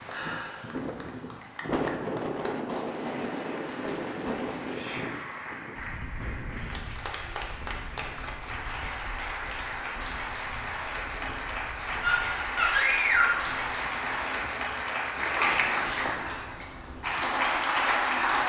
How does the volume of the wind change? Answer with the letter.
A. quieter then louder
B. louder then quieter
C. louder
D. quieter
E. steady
D.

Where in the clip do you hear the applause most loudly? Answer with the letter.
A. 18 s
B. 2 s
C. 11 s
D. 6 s
A.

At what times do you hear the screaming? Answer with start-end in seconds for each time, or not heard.
12.0-13.4.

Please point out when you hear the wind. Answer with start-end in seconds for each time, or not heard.
0.0-18.4.